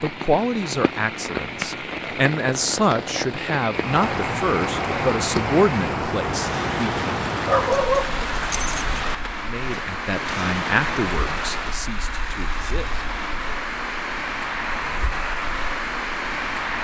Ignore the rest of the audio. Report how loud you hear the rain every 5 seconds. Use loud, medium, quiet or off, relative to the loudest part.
loud, loud, loud, off.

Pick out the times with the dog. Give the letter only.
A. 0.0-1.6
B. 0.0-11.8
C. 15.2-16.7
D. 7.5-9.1
D.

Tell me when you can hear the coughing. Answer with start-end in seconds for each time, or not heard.
not heard.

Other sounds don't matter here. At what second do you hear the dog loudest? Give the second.
8 s.